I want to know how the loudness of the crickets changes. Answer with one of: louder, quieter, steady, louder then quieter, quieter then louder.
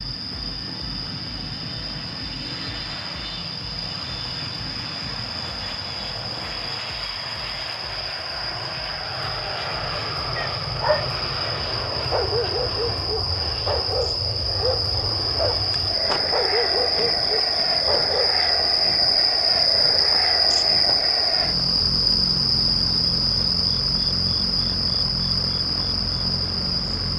louder.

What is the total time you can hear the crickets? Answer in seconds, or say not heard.
27 s.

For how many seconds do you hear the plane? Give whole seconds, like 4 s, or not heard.
27 s.